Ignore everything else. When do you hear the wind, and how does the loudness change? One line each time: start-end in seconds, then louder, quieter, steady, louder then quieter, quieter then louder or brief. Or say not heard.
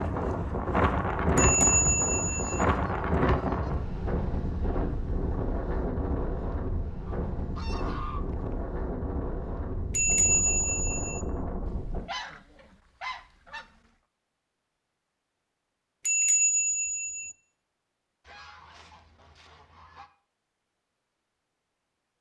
0.0-12.0 quieter.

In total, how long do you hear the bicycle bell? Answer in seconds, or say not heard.
4 s.